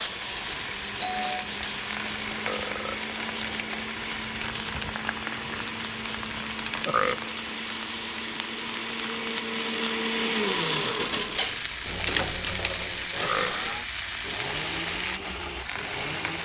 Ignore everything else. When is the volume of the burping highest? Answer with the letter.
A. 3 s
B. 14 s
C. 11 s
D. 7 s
D.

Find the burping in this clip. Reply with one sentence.
The burping can be heard from 2.2 to 3.9 s, from 6.8 to 7.4 s and from 13.2 to 13.7 s.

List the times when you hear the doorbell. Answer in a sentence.
You can hear the doorbell from 0.5 to 1.4 s.